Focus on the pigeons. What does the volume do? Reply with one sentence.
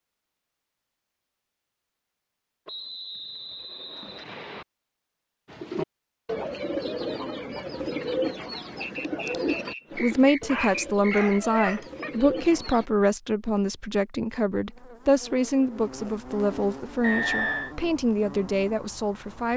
The volume of the pigeons goes down.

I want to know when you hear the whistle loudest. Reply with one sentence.
The volume of the whistle peaks at 17 seconds.